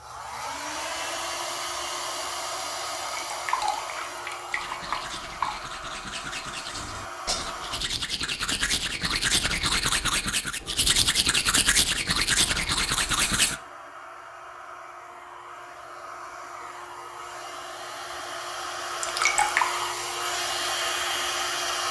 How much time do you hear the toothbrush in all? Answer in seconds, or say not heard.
9 s.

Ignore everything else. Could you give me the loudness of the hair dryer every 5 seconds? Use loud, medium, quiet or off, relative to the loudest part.
medium, medium, quiet, medium, loud.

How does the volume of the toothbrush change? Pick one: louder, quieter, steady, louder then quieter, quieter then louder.
louder.